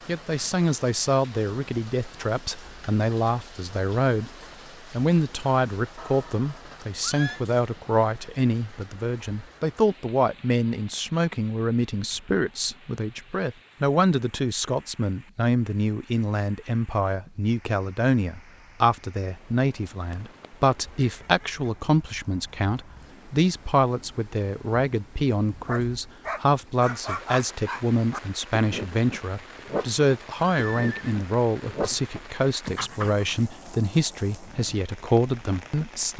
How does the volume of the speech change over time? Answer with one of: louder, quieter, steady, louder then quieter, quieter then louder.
steady.